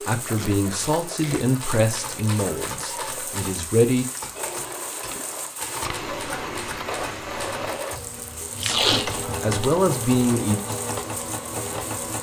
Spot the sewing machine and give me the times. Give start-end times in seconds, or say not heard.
0.1-12.1.